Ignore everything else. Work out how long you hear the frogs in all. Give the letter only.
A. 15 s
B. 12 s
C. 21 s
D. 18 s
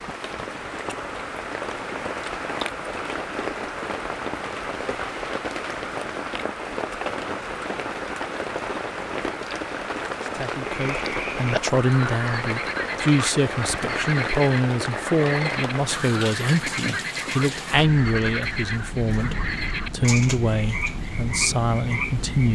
B.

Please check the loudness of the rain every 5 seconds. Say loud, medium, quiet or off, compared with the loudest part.
loud, loud, loud, loud, medium.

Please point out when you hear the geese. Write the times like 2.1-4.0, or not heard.
not heard.